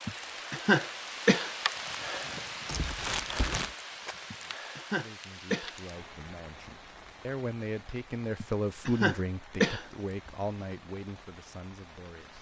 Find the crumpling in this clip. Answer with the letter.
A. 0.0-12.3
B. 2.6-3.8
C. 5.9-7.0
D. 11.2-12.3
B.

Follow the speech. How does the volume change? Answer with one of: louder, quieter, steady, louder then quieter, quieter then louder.
louder then quieter.